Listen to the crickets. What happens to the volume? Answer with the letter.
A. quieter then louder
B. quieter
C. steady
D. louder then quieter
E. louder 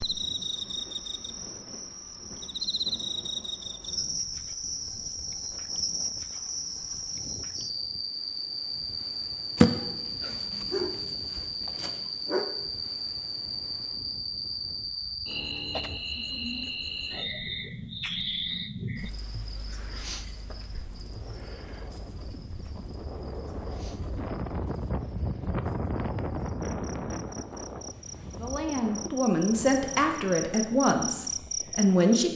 A.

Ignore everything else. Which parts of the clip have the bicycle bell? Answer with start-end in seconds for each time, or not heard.
not heard.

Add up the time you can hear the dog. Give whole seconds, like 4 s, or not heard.
3 s.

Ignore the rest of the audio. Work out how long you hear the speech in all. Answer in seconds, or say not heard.
4 s.